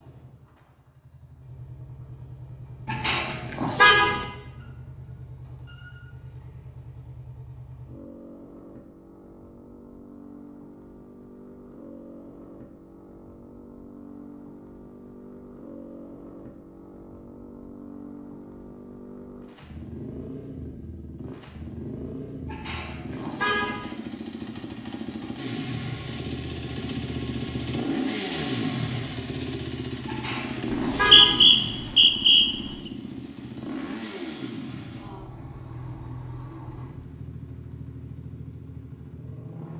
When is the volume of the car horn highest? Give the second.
4 s.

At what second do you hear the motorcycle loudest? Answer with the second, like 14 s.
28 s.